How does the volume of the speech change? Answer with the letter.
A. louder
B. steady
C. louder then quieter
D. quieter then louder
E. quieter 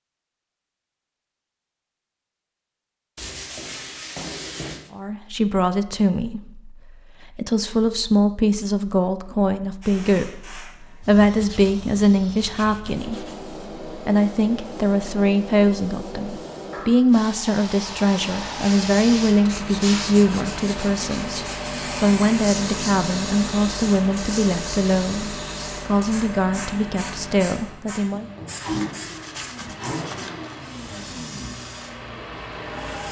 B.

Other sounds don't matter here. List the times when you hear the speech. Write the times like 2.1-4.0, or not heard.
4.9-28.2.